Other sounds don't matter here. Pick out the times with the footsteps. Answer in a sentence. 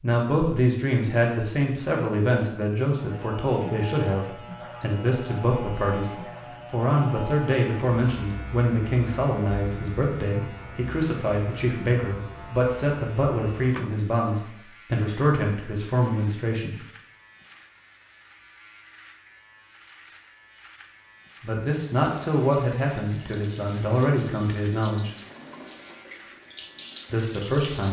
The footsteps can't be heard in this clip.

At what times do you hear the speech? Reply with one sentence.
The speech can be heard from 0.0 to 16.8 s, from 21.4 to 25.1 s and from 27.1 to 27.8 s.